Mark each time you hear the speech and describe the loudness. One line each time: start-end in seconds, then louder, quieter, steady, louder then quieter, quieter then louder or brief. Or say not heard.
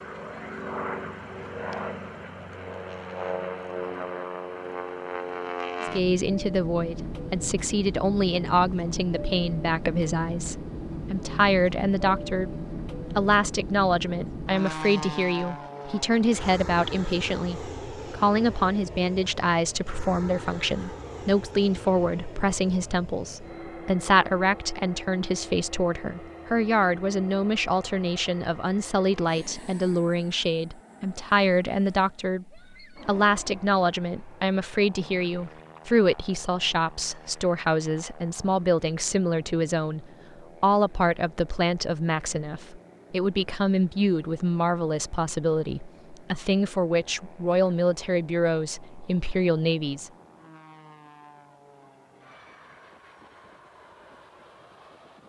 5.8-50.1 steady.